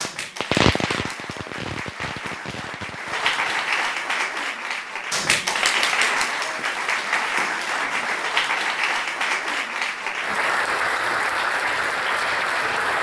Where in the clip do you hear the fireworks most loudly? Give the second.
1 s.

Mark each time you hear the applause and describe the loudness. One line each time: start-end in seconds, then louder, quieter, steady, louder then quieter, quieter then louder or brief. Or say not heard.
0.0-12.9 louder.